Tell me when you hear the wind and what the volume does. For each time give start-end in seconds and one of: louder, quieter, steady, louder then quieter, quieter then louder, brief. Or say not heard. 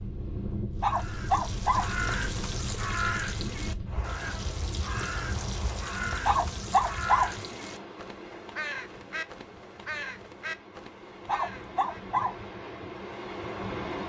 0.0-14.0 quieter then louder.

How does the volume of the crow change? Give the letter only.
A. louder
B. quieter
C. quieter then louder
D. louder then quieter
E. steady
B.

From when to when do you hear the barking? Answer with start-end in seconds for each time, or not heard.
0.8-2.0, 6.2-7.4, 11.2-12.4.